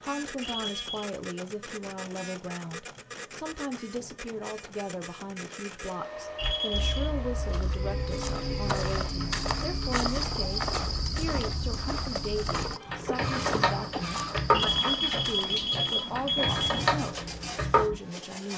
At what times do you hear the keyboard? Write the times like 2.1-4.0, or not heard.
6.4-18.0.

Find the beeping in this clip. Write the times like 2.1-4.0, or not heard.
0.4-1.1, 6.3-7.1, 14.5-16.9.